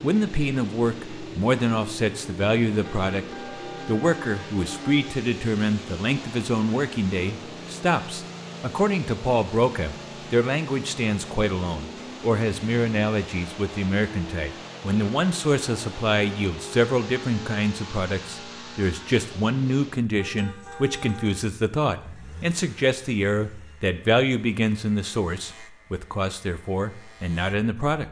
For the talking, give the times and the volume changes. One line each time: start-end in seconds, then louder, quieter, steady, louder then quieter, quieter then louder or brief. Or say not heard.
0.0-28.0 steady.